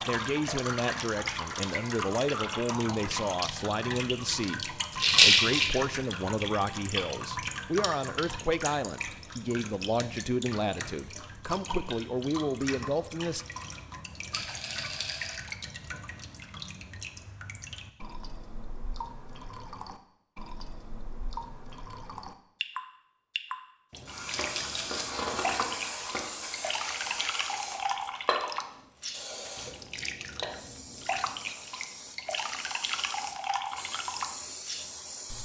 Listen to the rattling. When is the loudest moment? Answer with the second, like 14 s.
5 s.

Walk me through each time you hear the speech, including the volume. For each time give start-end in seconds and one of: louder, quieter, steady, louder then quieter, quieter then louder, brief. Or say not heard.
0.1-13.4 steady.